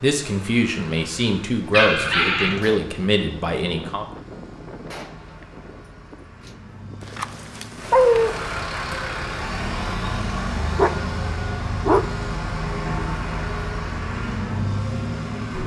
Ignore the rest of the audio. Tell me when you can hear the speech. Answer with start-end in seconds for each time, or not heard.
0.0-4.0.